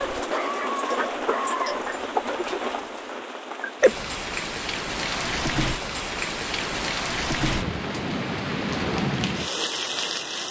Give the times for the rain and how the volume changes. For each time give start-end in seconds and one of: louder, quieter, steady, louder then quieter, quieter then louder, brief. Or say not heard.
0.0-10.4 steady.